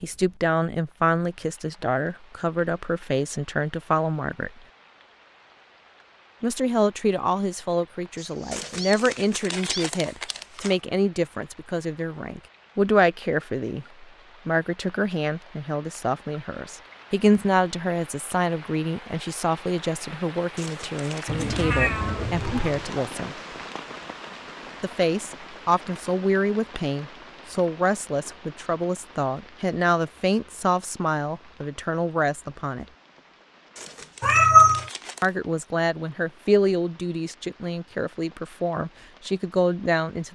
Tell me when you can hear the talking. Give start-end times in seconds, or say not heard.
0.0-4.5, 6.4-23.4, 24.8-32.9, 35.2-40.3.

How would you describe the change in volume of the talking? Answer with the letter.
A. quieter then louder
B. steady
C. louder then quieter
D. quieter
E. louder
B.